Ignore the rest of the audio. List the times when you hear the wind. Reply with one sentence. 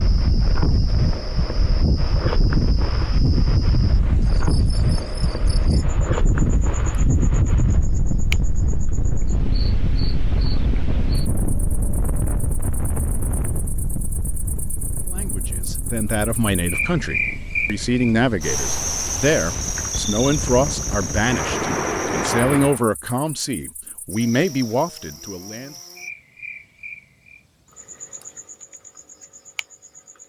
You can hear the wind from 0.0 to 22.8 s.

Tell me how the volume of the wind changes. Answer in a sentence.
The volume of the wind goes down, then up.